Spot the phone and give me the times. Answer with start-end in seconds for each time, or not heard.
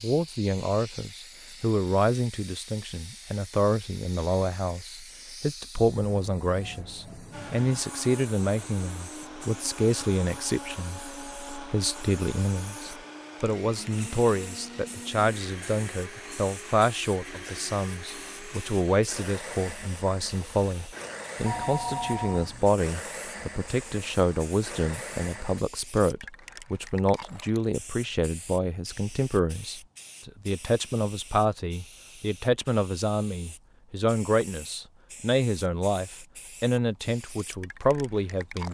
21.4-22.8.